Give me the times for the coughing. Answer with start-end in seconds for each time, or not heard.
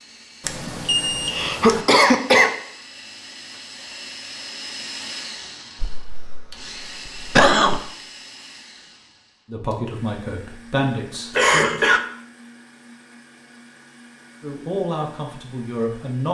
0.6-2.5, 5.8-7.8, 11.3-12.0.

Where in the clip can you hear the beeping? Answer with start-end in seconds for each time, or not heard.
0.5-1.9.